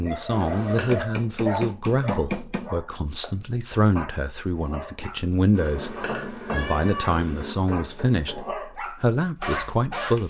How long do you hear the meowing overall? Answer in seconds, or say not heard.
3 s.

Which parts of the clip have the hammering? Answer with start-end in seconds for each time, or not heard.
0.7-2.7, 5.8-8.5.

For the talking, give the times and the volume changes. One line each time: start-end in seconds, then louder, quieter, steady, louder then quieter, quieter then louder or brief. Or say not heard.
0.0-10.2 steady.